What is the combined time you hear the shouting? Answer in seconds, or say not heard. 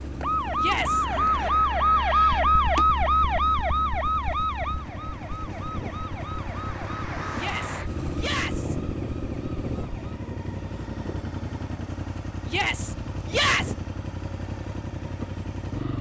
4 s.